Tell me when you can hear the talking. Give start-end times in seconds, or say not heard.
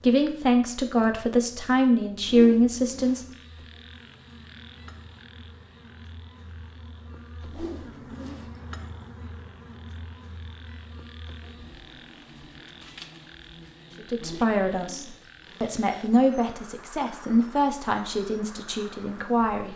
0.0-3.2, 13.9-19.7.